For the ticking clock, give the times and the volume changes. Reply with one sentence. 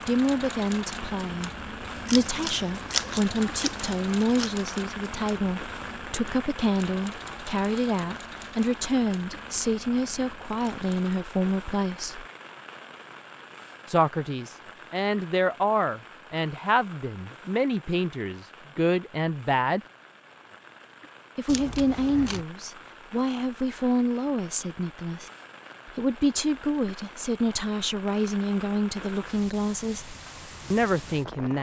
You can't hear the ticking clock here.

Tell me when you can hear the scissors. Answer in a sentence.
You can hear the scissors from 2.0 to 4.5 s and from 21.4 to 22.4 s.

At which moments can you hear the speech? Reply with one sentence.
You can hear the speech from 0.1 to 12.2 s, from 13.8 to 19.8 s and from 21.4 to 31.5 s.